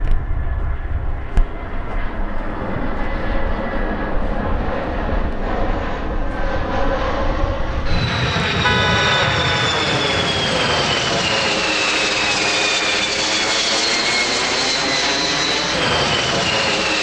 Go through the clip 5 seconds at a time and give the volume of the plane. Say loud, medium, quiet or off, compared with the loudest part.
medium, loud, loud, loud.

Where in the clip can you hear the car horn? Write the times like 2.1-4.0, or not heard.
8.6-9.7.